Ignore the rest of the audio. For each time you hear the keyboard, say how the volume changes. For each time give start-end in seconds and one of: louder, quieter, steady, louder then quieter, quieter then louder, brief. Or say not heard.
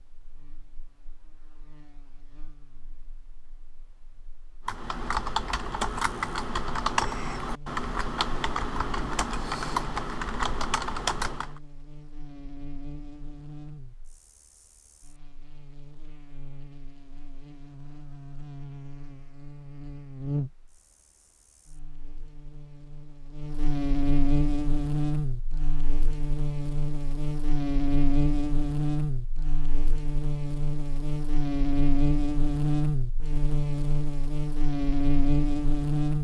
4.7-11.6 steady.